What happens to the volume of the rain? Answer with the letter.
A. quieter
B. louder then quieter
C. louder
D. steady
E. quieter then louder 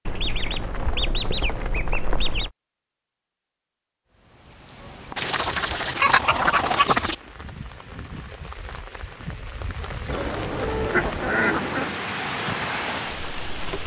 C.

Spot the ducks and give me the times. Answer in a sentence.
The ducks can be heard from 0.1 to 2.5 s, from 5.2 to 7.2 s and from 10.1 to 12.0 s.